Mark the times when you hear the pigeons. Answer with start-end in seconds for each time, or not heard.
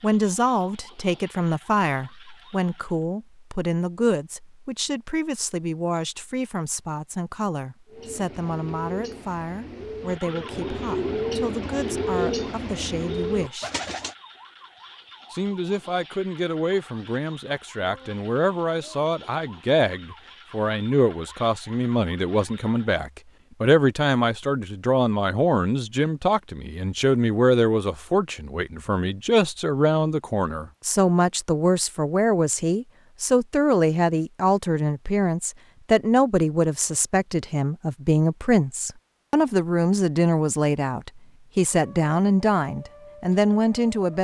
7.8-14.2.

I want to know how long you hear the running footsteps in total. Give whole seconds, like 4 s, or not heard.
not heard.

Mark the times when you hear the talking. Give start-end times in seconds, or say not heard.
0.0-13.7, 15.3-44.1.